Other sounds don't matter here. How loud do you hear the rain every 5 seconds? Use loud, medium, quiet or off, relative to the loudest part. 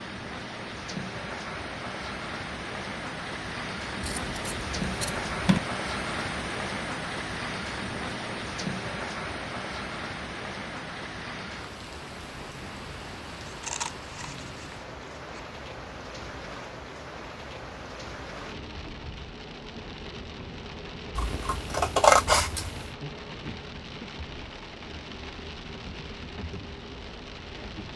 loud, loud, medium, medium, medium, medium.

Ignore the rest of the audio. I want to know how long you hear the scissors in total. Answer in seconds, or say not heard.
5 s.